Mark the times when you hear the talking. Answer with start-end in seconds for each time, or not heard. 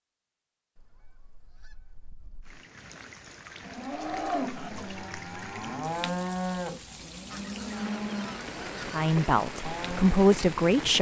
8.8-10.9.